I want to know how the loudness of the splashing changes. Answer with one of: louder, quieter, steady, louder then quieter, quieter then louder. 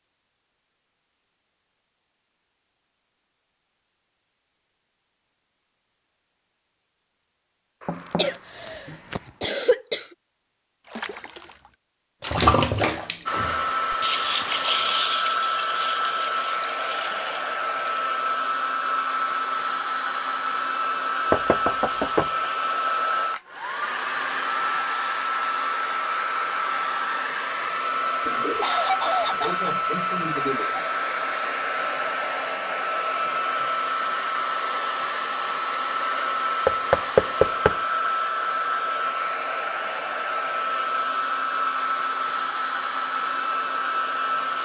louder then quieter.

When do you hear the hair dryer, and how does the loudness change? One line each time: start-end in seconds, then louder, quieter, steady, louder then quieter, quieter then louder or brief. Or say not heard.
13.2-44.6 steady.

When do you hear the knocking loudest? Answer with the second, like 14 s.
37 s.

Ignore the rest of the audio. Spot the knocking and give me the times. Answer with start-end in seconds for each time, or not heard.
7.8-9.3, 21.3-22.3, 36.6-37.8.